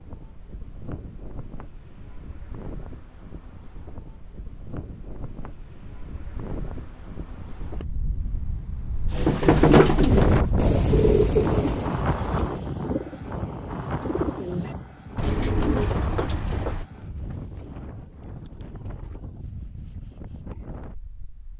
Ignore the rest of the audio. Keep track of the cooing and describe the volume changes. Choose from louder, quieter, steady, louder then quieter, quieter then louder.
quieter then louder.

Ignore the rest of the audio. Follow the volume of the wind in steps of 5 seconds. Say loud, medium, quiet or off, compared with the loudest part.
quiet, quiet, loud, quiet, quiet.